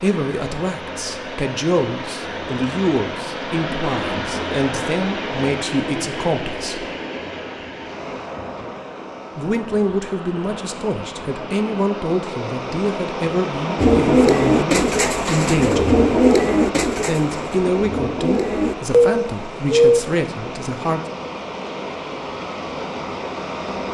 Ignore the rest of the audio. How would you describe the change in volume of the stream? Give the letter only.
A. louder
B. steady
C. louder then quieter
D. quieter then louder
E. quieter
B.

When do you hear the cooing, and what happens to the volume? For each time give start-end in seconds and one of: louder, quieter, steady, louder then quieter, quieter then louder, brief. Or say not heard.
13.8-20.0 quieter then louder.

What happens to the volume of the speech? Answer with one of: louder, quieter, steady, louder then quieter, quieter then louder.
steady.